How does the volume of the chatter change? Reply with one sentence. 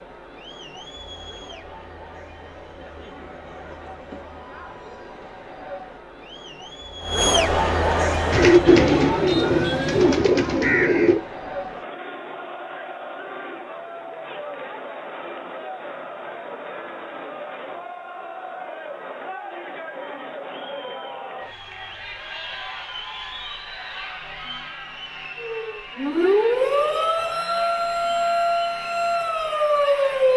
The volume of the chatter goes up, then down.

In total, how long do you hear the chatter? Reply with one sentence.
The chatter can be heard for 30 seconds in total.